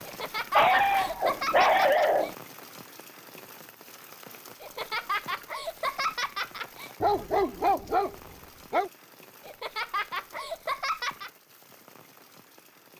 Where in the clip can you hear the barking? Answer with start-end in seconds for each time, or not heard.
0.6-2.4, 7.0-8.9.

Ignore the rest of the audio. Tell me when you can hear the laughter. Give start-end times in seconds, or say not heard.
0.0-2.4, 4.6-6.9, 9.4-11.3.